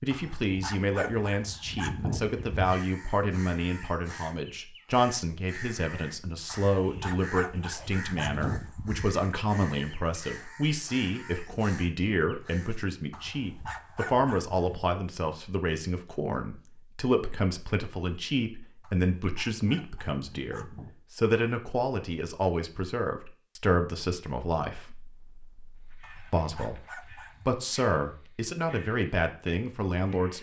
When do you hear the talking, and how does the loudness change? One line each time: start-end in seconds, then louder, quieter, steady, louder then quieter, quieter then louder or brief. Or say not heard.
0.0-30.3 steady.